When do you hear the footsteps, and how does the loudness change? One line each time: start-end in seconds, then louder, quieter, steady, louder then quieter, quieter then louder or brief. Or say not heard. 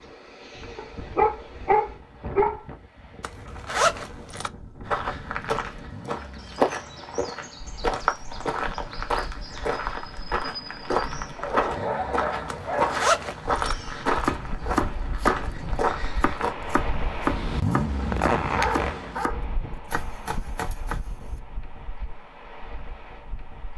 4.8-16.6 steady.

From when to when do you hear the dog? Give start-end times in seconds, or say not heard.
0.8-2.6, 11.3-13.0, 17.9-19.4.